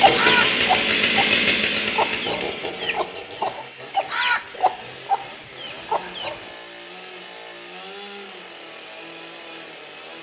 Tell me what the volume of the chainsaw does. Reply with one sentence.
The volume of the chainsaw goes down.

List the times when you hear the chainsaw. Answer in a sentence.
You can hear the chainsaw from 0.0 to 10.1 s.